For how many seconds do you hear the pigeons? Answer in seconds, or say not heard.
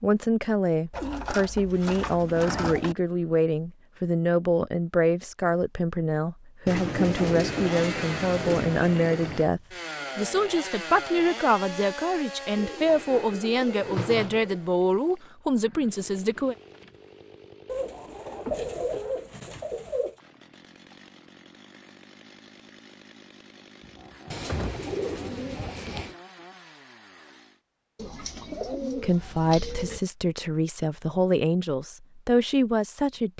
13 s.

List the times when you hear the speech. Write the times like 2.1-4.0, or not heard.
0.0-16.6, 28.9-33.3.